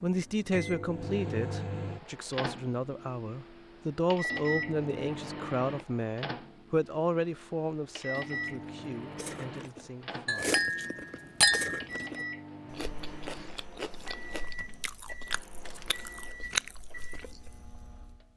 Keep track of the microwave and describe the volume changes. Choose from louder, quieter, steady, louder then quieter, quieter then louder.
quieter.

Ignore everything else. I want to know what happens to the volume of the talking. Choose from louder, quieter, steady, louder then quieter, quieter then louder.
quieter.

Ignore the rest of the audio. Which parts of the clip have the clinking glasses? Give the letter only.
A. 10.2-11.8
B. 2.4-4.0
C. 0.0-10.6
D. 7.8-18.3
A.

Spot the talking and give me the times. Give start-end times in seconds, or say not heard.
0.0-10.6.